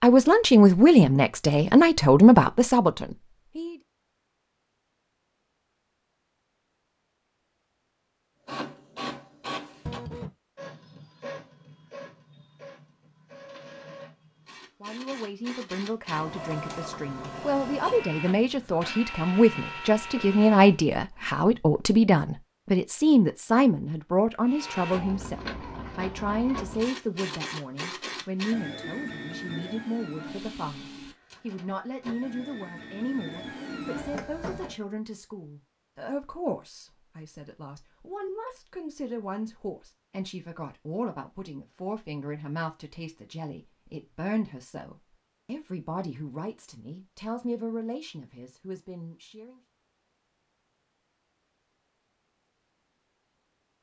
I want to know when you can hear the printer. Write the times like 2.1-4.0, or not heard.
8.4-20.8, 24.4-34.8.